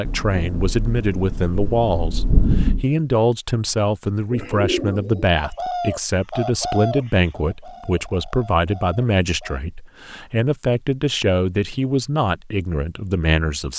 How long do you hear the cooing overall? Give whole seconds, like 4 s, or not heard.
5 s.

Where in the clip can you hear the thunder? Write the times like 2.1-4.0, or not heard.
0.1-2.9.